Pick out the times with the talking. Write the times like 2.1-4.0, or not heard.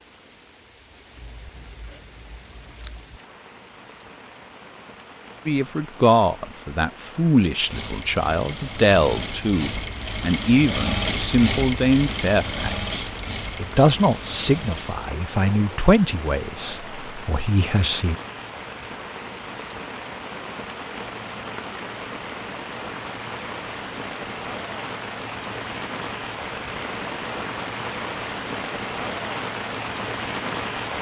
5.5-18.1.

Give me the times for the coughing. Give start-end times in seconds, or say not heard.
not heard.